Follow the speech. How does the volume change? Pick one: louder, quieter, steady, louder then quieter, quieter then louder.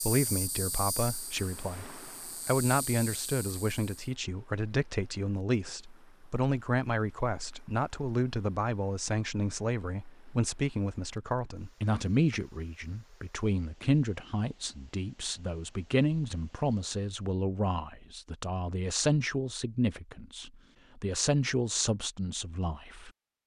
steady.